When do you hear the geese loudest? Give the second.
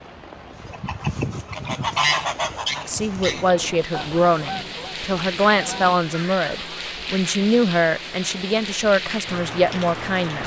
2 s.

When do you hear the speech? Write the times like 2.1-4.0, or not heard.
2.9-10.4.